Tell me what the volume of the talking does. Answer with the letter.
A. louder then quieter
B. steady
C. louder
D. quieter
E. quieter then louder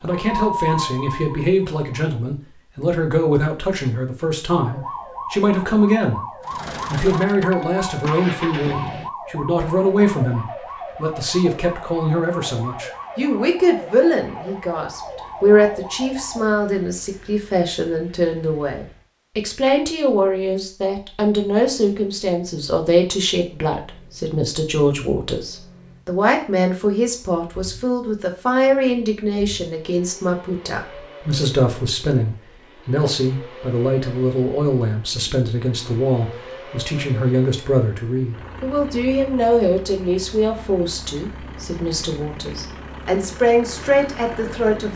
B.